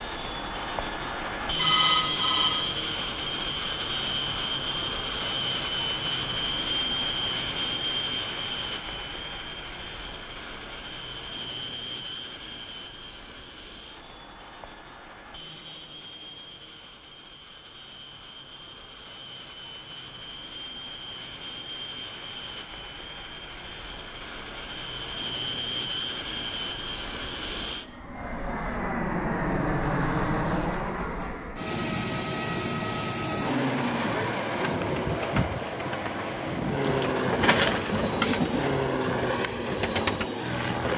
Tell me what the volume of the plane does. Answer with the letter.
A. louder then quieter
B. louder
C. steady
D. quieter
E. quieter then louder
E.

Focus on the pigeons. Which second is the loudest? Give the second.
38 s.